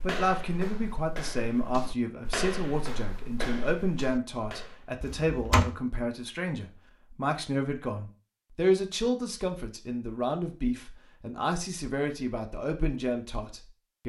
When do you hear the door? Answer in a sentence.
The door can be heard from 5.0 to 5.7 s.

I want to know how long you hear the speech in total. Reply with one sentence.
The speech can be heard for 14 seconds in total.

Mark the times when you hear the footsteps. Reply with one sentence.
You can hear the footsteps from 0.0 to 5.0 s.